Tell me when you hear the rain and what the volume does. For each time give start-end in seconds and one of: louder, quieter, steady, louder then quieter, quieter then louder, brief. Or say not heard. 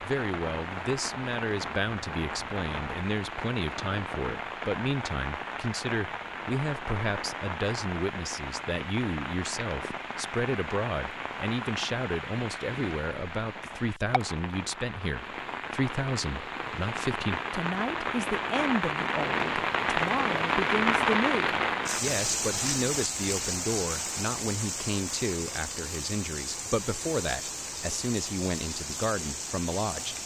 0.0-30.2 louder then quieter.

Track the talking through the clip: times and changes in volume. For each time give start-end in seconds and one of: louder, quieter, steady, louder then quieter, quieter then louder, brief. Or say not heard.
0.0-30.2 steady.